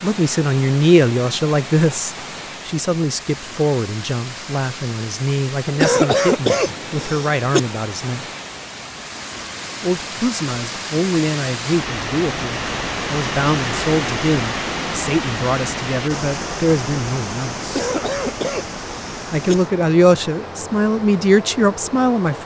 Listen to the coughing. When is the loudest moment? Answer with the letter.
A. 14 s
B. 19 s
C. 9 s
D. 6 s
D.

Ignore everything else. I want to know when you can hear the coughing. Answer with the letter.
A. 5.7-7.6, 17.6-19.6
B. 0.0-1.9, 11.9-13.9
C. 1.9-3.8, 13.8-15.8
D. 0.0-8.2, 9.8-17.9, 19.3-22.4
A.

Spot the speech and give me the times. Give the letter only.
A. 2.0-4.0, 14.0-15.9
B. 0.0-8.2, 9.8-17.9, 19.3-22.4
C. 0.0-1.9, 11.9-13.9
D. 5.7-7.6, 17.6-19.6
B.